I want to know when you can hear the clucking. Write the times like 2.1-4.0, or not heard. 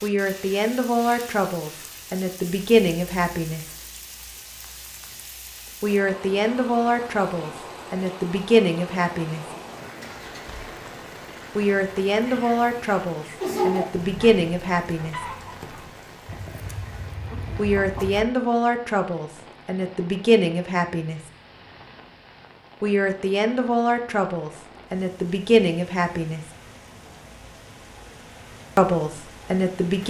12.2-18.2.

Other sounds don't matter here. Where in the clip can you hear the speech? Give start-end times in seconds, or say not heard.
0.0-3.6, 5.8-9.4, 11.6-15.2, 17.6-21.2, 22.8-26.4, 28.8-30.0.